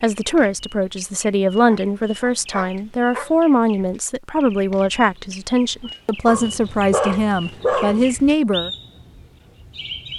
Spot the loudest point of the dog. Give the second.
8 s.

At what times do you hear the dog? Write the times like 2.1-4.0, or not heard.
1.6-3.3, 6.2-8.2.